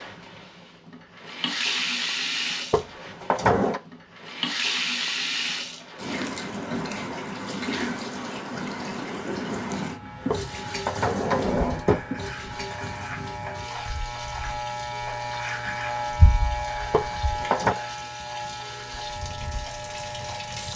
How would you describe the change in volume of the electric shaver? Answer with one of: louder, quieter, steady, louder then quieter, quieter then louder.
louder then quieter.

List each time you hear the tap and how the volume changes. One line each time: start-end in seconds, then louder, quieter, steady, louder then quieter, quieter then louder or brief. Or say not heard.
0.0-20.7 quieter.